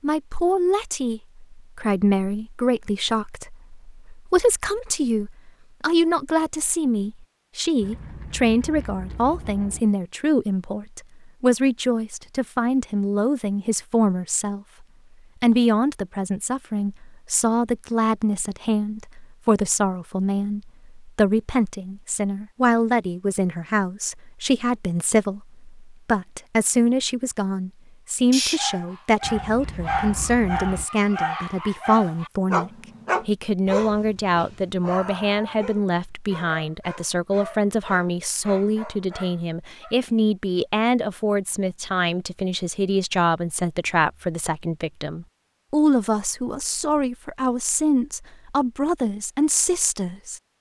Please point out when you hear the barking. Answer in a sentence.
You can hear the barking from 28.3 to 40.0 s.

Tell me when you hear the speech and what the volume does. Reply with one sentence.
The speech can be heard from 0.0 to 50.5 s, at a steady volume.